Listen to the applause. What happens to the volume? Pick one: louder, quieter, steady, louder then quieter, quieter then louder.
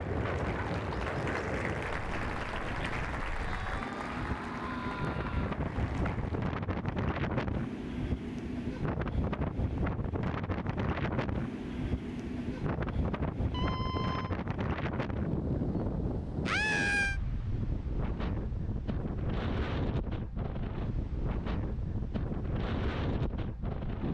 quieter.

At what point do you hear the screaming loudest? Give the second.
17 s.